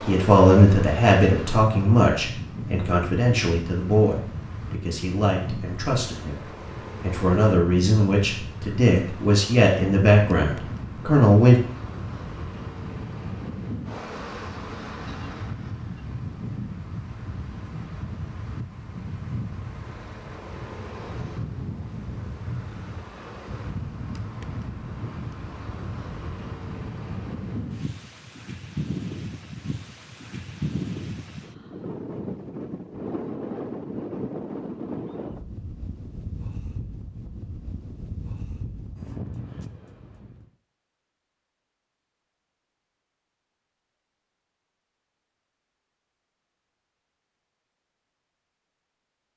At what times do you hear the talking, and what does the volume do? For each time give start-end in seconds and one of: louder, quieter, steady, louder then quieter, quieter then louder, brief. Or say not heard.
0.0-11.6 quieter then louder.